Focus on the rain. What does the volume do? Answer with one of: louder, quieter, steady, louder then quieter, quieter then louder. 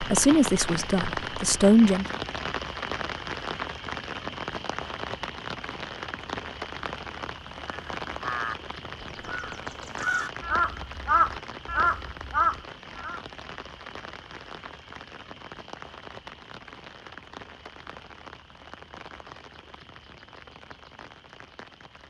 quieter.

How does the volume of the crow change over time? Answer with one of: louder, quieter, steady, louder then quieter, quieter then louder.
quieter then louder.